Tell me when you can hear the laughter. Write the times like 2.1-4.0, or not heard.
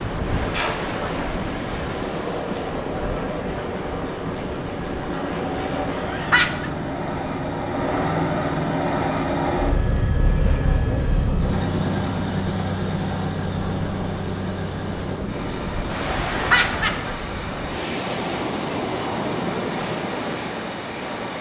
6.0-6.7, 16.3-17.1.